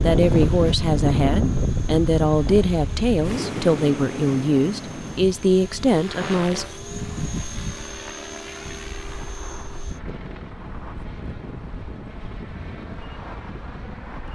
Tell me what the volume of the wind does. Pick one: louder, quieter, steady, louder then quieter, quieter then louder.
quieter.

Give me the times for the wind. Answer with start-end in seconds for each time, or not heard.
0.0-14.3.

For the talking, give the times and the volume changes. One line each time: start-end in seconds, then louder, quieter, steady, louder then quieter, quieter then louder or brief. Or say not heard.
0.0-6.7 steady.